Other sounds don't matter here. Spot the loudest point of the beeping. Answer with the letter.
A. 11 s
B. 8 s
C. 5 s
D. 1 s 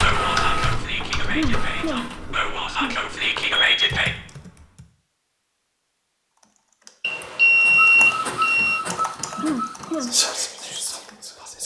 B.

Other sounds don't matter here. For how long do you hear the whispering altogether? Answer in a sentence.
You can hear the whispering for 6 seconds altogether.